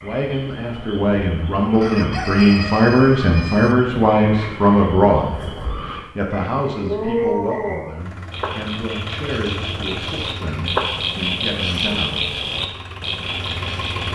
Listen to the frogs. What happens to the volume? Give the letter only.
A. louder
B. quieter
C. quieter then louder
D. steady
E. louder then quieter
A.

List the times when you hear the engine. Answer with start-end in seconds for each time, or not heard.
8.0-14.0.